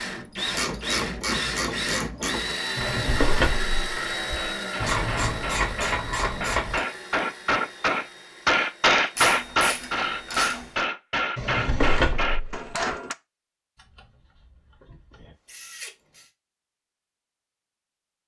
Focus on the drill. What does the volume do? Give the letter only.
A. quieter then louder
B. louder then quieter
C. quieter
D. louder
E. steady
C.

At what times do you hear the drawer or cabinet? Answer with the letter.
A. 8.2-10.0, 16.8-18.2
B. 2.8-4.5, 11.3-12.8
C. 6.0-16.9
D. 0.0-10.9
B.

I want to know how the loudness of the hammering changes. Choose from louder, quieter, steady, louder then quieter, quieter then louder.
louder then quieter.